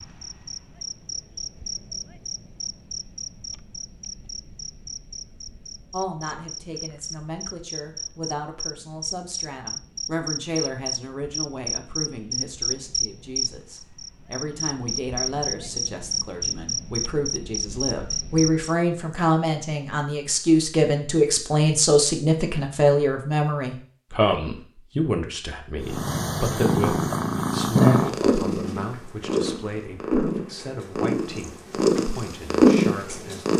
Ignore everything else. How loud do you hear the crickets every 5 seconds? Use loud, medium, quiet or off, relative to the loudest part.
medium, medium, loud, loud, off, off, off.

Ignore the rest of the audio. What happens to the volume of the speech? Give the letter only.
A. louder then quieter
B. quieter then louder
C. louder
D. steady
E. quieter
A.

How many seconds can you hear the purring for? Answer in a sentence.
You can hear the purring for 8 seconds altogether.